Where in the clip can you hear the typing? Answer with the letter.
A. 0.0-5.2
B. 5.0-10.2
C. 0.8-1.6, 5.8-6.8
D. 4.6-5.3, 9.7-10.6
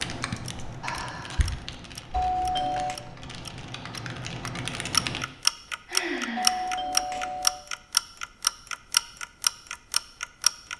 A.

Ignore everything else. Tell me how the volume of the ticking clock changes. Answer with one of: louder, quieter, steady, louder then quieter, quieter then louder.
louder.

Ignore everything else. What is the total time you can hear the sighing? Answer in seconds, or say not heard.
2 s.